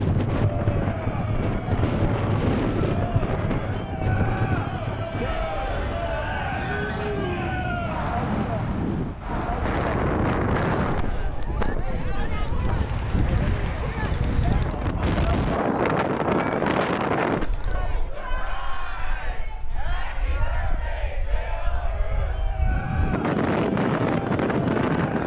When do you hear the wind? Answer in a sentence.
You can hear the wind from 0.0 to 25.2 s.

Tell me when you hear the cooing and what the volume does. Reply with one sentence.
You can't hear the cooing here.